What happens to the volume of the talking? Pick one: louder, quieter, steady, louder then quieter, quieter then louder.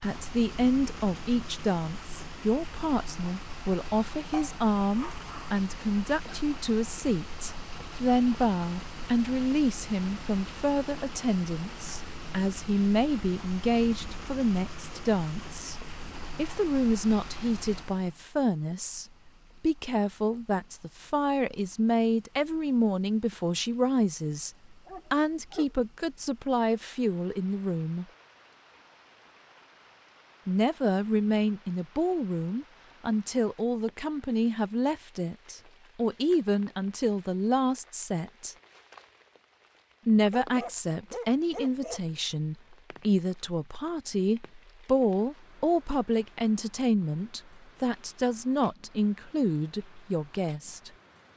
steady.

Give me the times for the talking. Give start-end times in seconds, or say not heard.
0.0-15.8, 16.4-28.1, 30.4-38.5, 40.0-50.9.